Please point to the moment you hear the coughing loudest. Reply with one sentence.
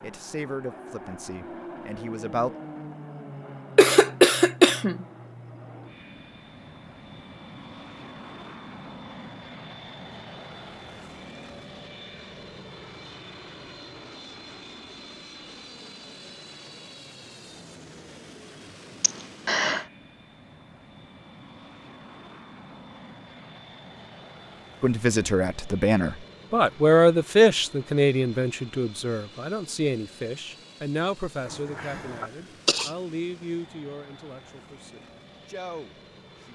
The loudest moment of the coughing is at 4 seconds.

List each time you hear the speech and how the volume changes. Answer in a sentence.
You can hear the speech briefly from 0.0 to 2.5 s; and from 24.8 to 36.5 s, getting quieter.